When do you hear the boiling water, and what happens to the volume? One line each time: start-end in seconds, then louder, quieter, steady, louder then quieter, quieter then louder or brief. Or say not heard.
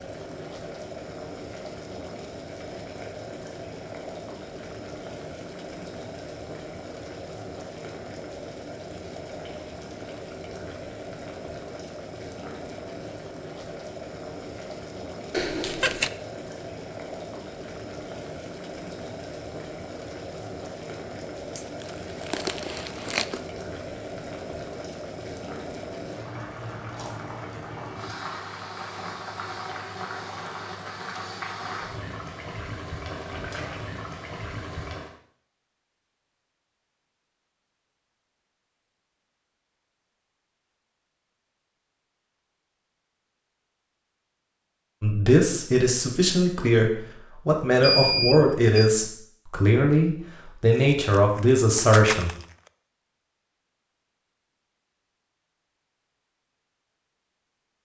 0.0-35.1 steady.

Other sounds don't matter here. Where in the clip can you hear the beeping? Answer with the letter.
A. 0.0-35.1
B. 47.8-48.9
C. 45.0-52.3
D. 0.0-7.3
B.